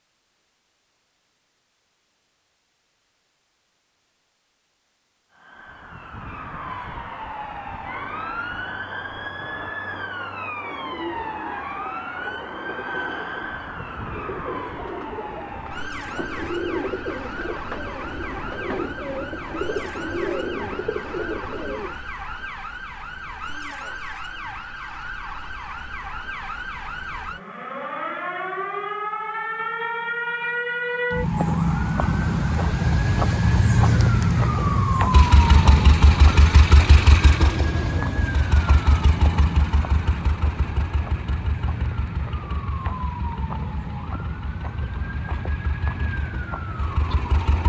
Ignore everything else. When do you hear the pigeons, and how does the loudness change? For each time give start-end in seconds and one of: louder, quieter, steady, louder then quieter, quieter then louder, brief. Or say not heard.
10.6-22.1 louder.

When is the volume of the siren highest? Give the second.
34 s.